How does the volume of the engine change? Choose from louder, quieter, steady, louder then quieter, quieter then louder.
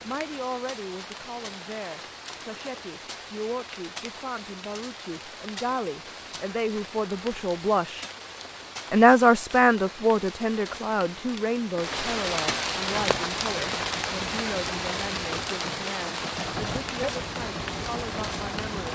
louder.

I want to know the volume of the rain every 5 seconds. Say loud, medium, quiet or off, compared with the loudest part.
medium, medium, loud, loud.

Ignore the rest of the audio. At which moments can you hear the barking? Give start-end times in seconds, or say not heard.
not heard.